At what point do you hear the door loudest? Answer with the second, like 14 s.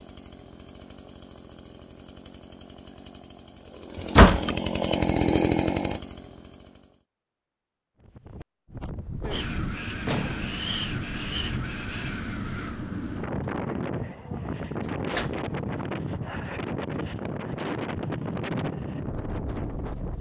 4 s.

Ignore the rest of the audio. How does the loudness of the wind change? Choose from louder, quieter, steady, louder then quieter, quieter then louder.
steady.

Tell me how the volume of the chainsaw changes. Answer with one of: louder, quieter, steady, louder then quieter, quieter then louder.
louder.